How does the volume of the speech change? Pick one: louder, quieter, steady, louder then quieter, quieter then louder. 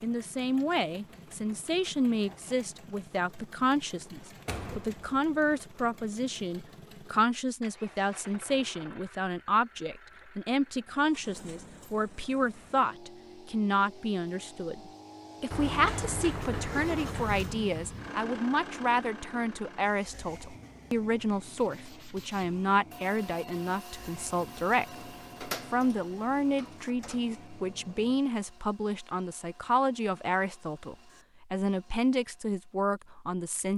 steady.